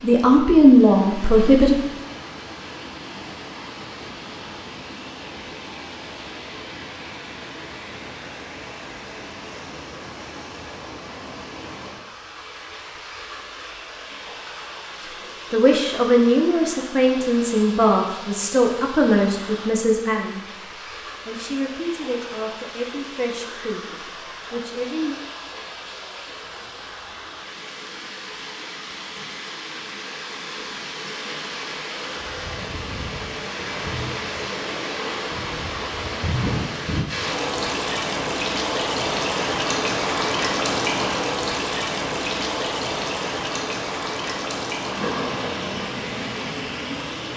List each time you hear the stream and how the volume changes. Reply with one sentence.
You can hear the stream from 0.0 to 47.3 s, getting louder.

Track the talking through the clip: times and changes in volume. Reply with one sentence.
The talking can be heard briefly from 0.0 to 1.8 s; and from 15.5 to 25.2 s, getting quieter.